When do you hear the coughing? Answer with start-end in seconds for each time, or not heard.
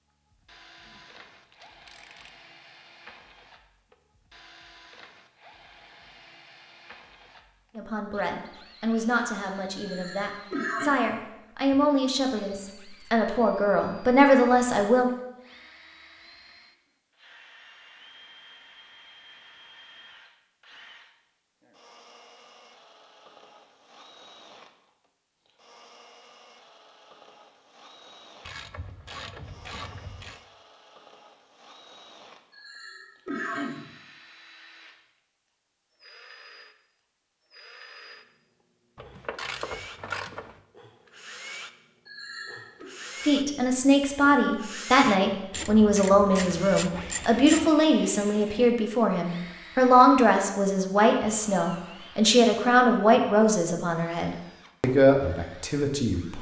9.8-11.0, 32.5-34.0, 42.0-42.9.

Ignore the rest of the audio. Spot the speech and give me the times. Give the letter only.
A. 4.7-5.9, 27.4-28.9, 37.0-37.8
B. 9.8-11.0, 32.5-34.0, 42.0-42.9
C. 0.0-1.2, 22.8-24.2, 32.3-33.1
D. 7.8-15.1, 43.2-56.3
D.